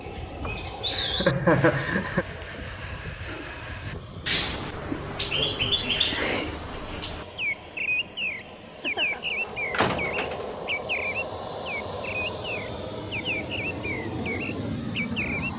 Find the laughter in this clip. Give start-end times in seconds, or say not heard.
0.5-2.2, 8.7-9.2.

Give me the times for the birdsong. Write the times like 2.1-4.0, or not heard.
0.0-15.5.